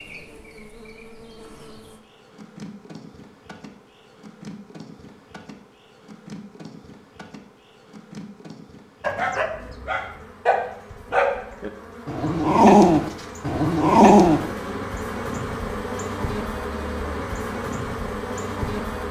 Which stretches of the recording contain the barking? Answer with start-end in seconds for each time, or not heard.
9.0-14.4.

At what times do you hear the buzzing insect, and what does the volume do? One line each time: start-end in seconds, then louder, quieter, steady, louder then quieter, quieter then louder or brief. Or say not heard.
0.0-19.0 louder.